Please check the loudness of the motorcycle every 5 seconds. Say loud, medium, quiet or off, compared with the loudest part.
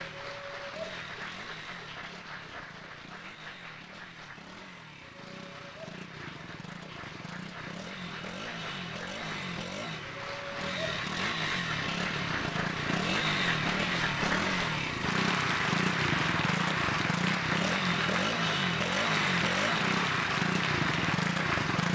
quiet, medium, loud, loud, loud.